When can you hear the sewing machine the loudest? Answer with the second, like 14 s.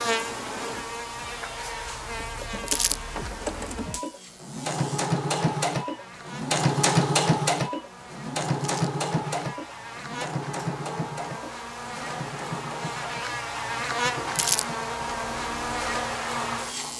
7 s.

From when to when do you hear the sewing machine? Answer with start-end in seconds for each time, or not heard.
0.0-16.9.